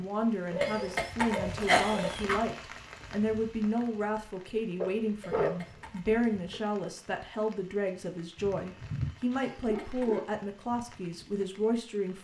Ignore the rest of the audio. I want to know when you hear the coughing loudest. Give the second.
2 s.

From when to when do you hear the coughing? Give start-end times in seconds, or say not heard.
0.6-2.4, 5.2-6.2, 9.4-10.1.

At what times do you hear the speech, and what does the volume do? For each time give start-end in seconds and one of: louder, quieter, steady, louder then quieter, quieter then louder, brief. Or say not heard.
0.0-12.1 steady.